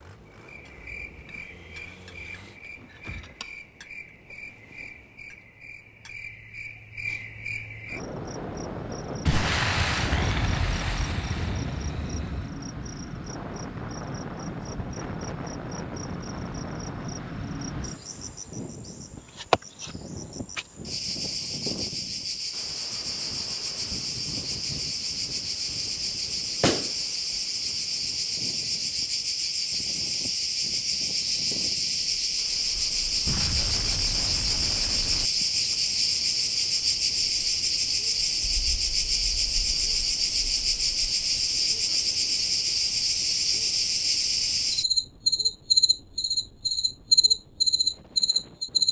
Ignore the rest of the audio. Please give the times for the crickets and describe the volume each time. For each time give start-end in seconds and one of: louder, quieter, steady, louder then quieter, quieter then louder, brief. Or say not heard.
0.0-48.8 louder.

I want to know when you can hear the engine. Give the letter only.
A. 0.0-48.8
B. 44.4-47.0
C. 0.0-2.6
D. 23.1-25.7
C.